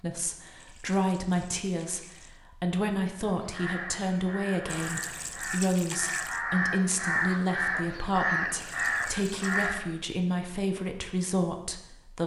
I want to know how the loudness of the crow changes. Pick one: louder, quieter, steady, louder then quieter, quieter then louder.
louder.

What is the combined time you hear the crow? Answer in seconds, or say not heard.
7 s.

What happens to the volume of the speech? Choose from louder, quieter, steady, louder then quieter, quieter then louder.
steady.